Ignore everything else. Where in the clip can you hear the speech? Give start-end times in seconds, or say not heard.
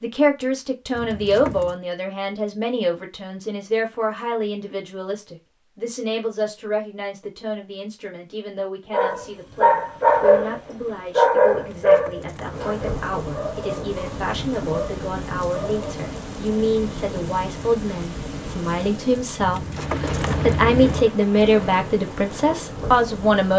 0.0-23.5.